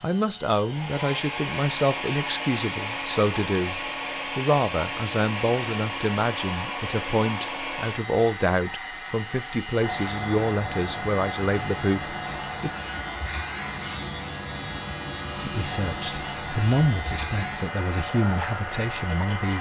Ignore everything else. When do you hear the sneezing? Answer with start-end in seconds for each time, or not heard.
not heard.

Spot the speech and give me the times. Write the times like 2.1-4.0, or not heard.
0.0-12.7, 15.4-19.5.